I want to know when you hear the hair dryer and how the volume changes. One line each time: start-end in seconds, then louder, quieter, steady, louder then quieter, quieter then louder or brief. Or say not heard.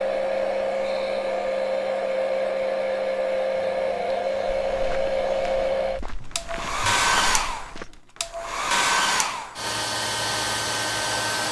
0.0-11.4 steady.